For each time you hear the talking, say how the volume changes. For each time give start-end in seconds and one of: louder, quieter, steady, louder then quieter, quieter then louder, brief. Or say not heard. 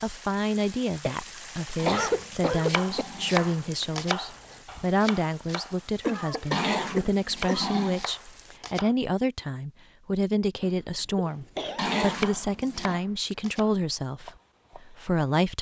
0.0-15.5 steady.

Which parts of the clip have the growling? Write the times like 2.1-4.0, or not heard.
1.8-3.5, 6.5-8.1, 11.8-13.0.